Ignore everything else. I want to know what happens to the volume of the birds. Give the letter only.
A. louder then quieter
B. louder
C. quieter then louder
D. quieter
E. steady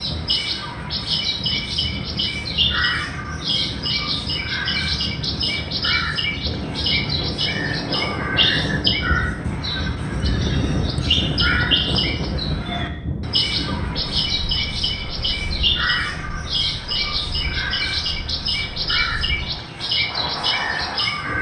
E.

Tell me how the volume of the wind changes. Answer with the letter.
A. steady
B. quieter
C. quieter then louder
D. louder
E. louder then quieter
E.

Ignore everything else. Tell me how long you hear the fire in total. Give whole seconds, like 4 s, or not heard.
not heard.